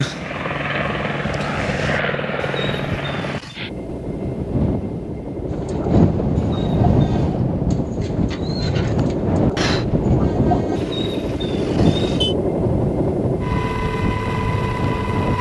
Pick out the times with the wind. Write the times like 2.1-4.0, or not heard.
0.0-15.3.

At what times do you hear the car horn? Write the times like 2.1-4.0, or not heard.
2.4-3.6, 6.3-7.5, 10.8-12.3.